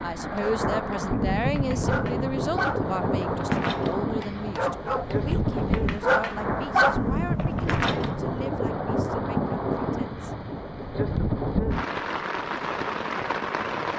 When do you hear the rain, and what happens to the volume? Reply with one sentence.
The rain can be heard from 0.0 to 13.9 s, at a steady volume.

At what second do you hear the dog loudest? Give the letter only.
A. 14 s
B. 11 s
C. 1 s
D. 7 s
D.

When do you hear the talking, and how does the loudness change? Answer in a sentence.
You can hear the talking from 0.0 to 10.3 s, getting quieter.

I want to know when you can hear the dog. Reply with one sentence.
The dog can be heard from 0.3 to 8.2 s.